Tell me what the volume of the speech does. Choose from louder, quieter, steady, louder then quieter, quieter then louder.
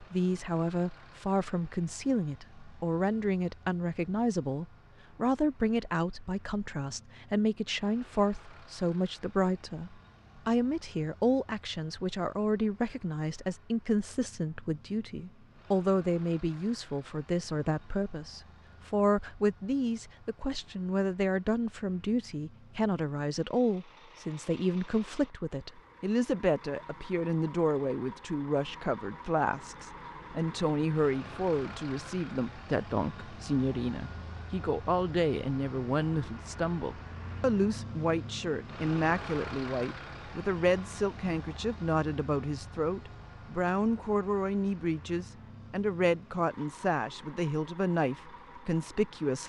steady.